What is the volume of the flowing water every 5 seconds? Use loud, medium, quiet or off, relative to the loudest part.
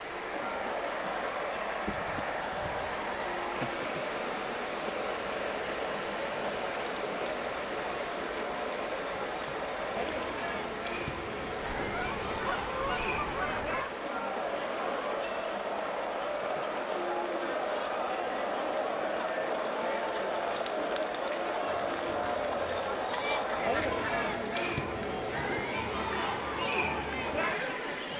loud, loud, loud, medium, medium, medium.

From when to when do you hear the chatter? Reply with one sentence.
You can hear the chatter from 0.1 to 28.1 s.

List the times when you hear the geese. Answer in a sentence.
You can hear the geese from 1.9 to 3.8 s, from 11.6 to 13.9 s and from 21.6 to 24.3 s.